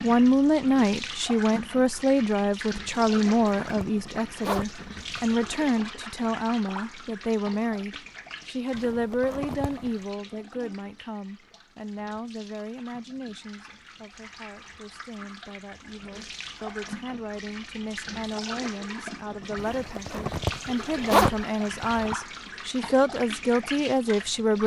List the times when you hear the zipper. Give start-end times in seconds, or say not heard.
2.9-5.5, 8.7-10.0, 19.6-22.1.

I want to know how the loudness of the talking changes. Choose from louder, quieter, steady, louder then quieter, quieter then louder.
quieter then louder.